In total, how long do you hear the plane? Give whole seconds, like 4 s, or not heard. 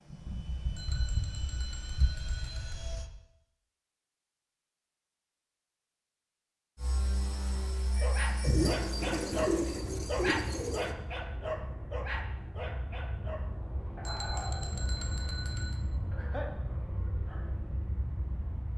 15 s.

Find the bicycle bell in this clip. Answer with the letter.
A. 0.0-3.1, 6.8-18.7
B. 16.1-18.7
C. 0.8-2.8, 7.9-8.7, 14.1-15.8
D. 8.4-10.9
C.